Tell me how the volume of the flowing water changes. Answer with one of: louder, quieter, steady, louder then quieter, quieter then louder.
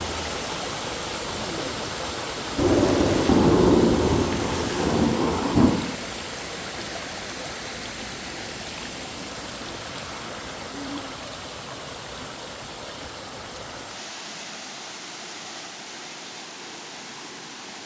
quieter.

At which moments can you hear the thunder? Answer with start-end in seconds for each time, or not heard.
2.5-5.8.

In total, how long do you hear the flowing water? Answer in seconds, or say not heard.
18 s.